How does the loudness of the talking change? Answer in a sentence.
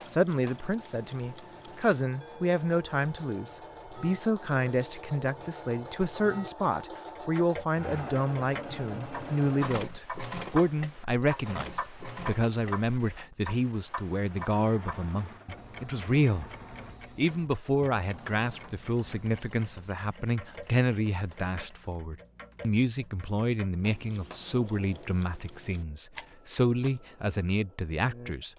The loudness of the talking stays about the same.